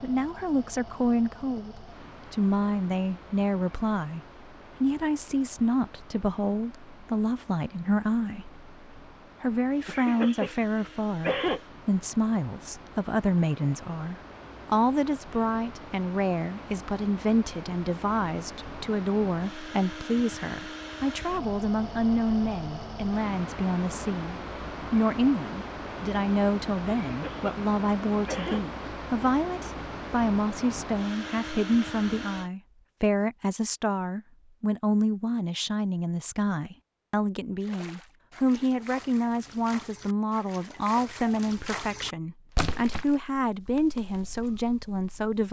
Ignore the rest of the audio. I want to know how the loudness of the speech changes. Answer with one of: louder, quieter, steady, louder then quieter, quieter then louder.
steady.